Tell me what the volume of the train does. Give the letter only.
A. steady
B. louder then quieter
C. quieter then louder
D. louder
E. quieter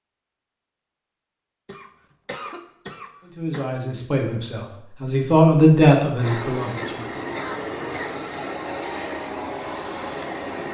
A.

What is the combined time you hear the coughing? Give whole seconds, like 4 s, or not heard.
4 s.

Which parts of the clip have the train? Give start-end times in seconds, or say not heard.
6.2-10.7.